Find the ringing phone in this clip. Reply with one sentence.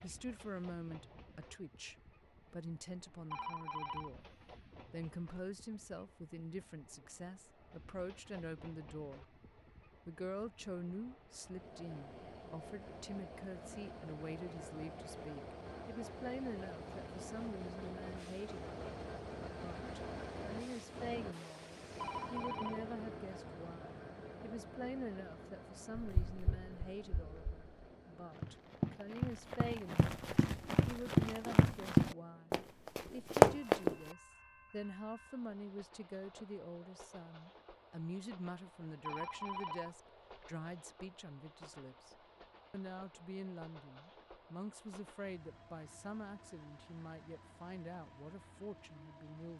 The ringing phone can be heard from 3.3 to 4.1 s, from 21.9 to 22.9 s and from 39.0 to 40.8 s.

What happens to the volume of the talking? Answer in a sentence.
The loudness of the talking stays about the same.